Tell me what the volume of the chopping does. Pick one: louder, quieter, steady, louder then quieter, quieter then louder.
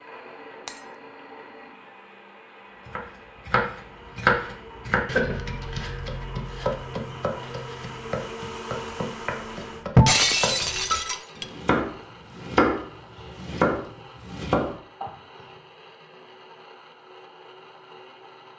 quieter then louder.